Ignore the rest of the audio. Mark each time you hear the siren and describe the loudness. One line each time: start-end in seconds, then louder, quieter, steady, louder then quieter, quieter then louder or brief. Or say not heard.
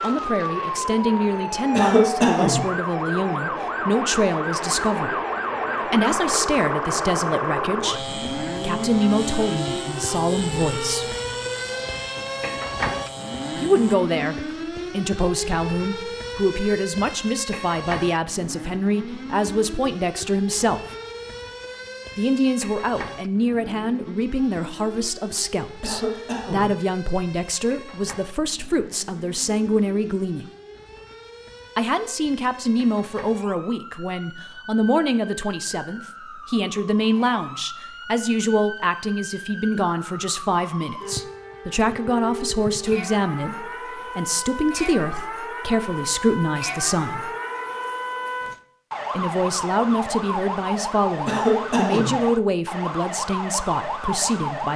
0.0-54.7 quieter then louder.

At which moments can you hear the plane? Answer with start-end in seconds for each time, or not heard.
0.0-13.9.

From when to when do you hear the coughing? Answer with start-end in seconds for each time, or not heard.
1.7-2.7, 25.8-26.8, 51.2-52.2.